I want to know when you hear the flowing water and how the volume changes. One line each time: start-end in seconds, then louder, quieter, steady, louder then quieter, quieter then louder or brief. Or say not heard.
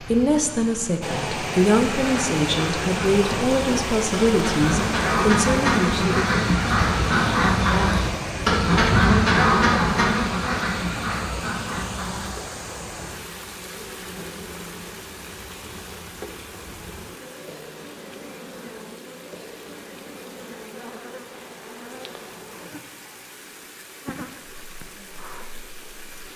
0.0-26.3 quieter.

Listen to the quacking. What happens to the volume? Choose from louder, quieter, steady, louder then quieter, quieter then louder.
louder then quieter.